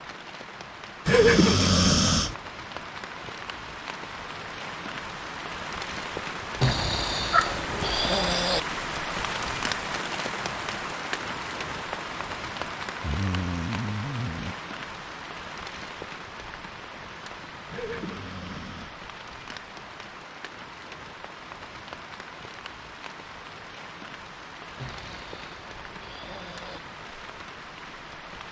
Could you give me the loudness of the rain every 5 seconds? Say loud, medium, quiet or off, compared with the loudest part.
medium, loud, loud, medium, medium, medium.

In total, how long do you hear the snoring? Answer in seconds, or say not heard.
8 s.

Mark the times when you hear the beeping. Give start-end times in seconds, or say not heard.
not heard.